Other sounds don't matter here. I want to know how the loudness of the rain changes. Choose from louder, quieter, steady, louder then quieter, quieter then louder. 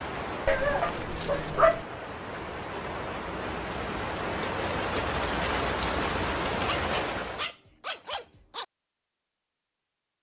louder.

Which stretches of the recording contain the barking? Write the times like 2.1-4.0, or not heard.
0.5-1.9, 6.7-8.7.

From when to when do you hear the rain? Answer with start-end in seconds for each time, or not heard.
0.0-7.5.